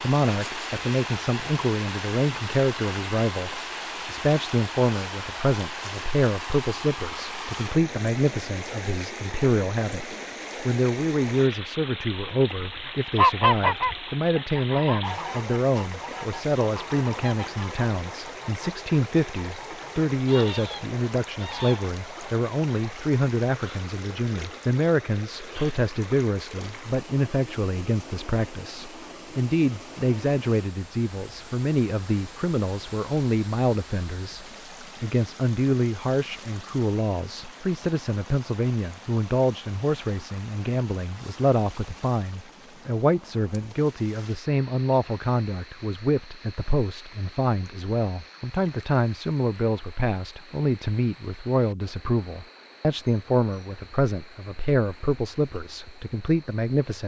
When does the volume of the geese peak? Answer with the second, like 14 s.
13 s.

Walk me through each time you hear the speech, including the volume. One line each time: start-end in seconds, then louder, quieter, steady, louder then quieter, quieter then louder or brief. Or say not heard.
0.0-57.0 steady.